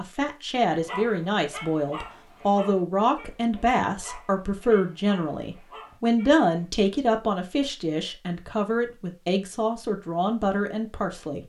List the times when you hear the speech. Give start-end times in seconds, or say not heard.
0.0-11.4.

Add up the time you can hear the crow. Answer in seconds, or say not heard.
not heard.